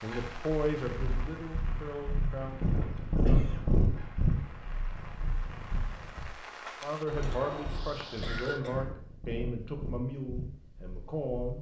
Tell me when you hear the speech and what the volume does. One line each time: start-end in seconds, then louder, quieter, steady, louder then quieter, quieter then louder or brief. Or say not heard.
0.0-2.6 brief
6.8-11.5 quieter.